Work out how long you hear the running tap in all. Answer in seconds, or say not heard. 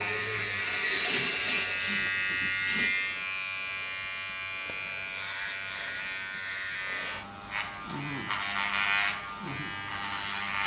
2 s.